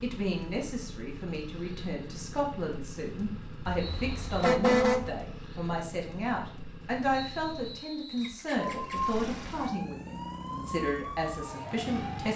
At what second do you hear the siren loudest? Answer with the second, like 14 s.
9 s.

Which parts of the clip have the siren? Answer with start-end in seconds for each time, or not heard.
8.6-12.3.